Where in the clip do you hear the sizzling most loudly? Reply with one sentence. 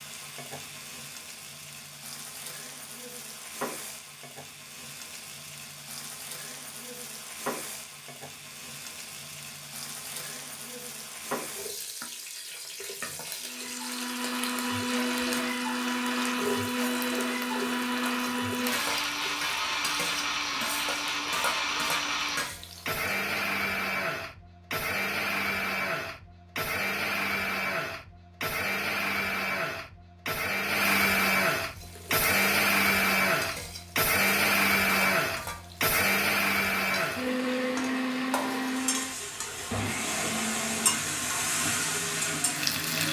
The loudest moment of the sizzling is at 41 seconds.